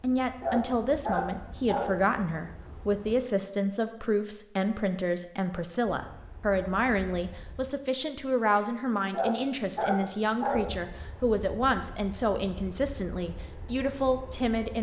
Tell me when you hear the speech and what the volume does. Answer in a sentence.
The speech can be heard from 0.0 to 14.7 s, at a steady volume.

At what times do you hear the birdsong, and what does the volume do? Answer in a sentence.
You can't hear the birdsong here.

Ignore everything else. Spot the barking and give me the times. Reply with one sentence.
The barking can be heard from 0.4 to 2.0 s and from 9.1 to 10.8 s.